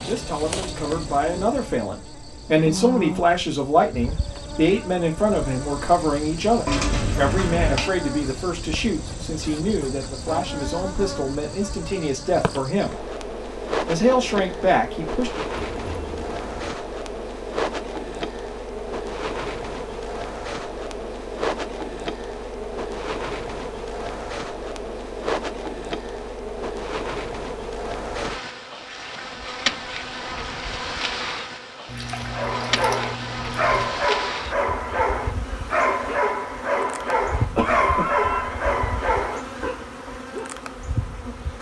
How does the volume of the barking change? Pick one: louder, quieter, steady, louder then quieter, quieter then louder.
steady.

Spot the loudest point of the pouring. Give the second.
7 s.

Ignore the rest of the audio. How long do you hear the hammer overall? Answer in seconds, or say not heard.
not heard.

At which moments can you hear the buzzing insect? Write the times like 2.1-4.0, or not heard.
0.0-41.5.